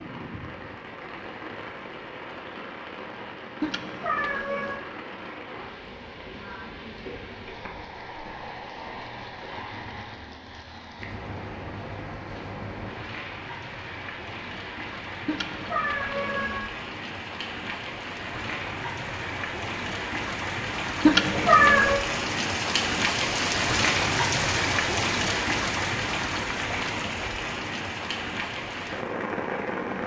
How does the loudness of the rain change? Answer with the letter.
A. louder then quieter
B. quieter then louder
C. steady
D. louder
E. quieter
D.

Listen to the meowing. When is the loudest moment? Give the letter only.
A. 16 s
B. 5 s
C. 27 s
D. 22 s
D.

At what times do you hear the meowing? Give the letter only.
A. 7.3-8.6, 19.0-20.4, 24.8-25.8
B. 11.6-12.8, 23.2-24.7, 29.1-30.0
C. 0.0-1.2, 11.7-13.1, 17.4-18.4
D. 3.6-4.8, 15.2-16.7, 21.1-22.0
D.